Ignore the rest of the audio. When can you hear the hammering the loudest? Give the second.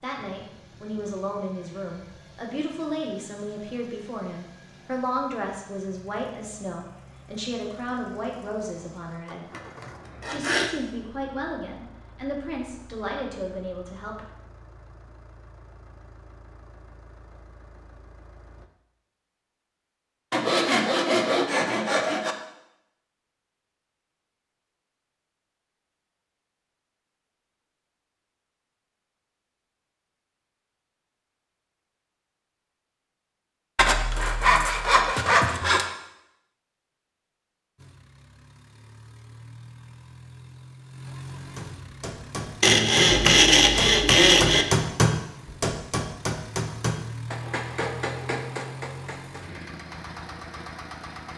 45 s.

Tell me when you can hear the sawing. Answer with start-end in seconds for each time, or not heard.
9.5-10.7, 20.3-22.4, 33.8-35.9, 42.6-44.6.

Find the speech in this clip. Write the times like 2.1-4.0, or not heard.
0.0-9.5, 10.2-14.2.